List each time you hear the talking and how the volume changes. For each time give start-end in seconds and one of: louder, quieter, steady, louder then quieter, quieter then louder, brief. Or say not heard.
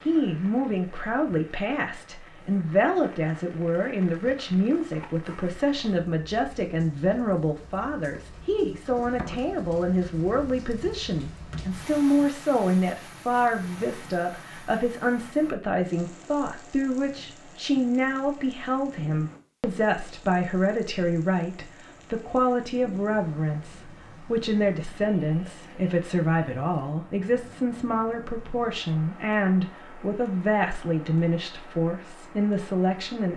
0.1-33.3 steady.